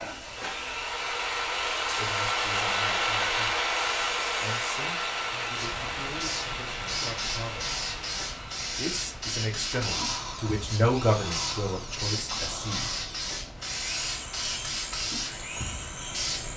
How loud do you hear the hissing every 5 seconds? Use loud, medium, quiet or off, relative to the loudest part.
medium, loud, loud, loud.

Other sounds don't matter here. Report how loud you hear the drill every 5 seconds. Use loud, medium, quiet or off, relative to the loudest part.
loud, medium, medium, medium.